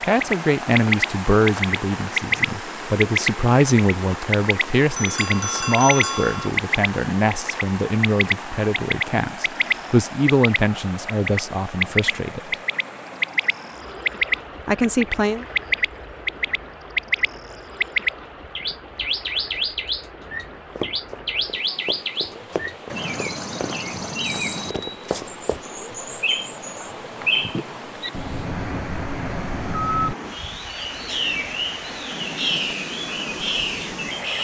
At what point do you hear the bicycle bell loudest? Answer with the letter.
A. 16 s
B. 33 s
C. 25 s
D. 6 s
D.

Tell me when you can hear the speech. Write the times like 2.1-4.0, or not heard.
0.0-12.6, 14.7-15.4.